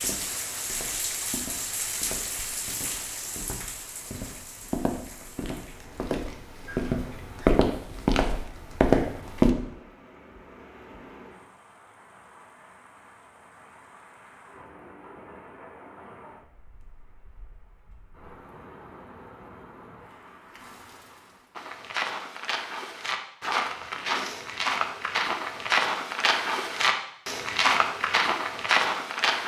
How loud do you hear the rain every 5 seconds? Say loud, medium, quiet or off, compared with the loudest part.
loud, quiet, quiet, quiet, quiet, off.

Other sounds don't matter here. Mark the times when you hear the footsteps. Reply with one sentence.
You can hear the footsteps from 0.0 to 9.6 s and from 21.6 to 29.4 s.